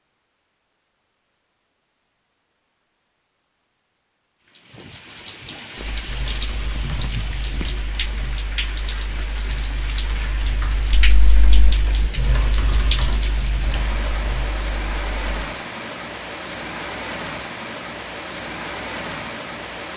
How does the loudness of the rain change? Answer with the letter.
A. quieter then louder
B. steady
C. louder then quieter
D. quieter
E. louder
B.